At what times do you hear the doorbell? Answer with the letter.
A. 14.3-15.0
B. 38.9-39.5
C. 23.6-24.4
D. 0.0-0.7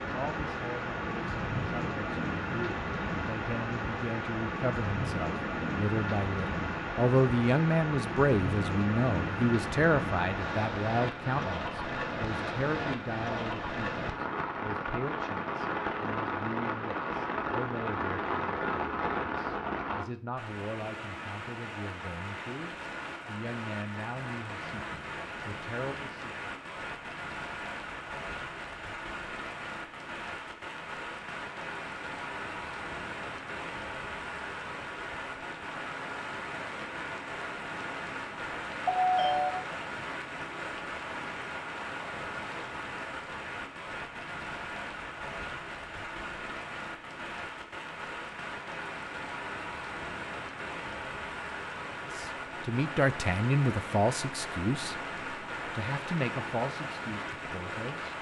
B.